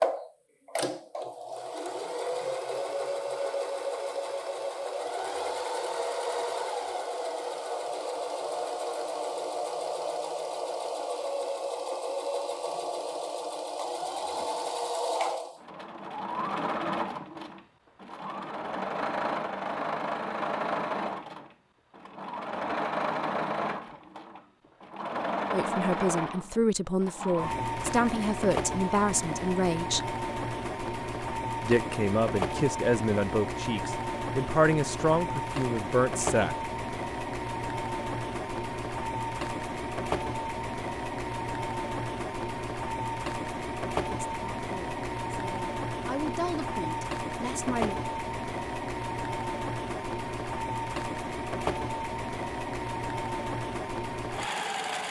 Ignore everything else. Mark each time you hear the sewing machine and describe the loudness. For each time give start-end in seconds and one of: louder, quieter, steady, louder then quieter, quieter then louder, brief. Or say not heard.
0.0-55.0 steady.